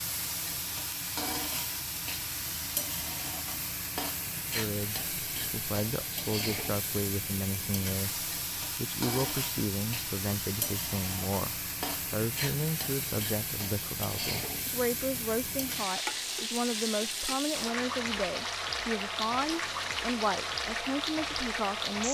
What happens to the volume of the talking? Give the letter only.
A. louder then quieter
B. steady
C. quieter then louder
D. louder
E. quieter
B.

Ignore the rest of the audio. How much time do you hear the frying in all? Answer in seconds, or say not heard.
22 s.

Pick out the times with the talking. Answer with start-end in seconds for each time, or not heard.
4.5-22.0.